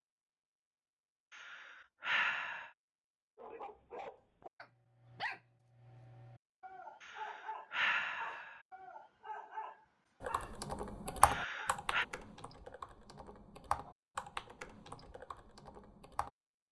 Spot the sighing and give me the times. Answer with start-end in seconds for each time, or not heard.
1.3-2.7, 7.0-8.6, 11.2-12.1.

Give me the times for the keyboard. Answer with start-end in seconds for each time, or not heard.
10.2-16.3.